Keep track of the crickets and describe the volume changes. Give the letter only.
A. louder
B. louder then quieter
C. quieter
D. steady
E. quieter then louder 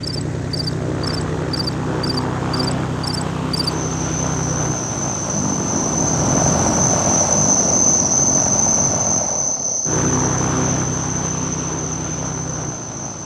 B.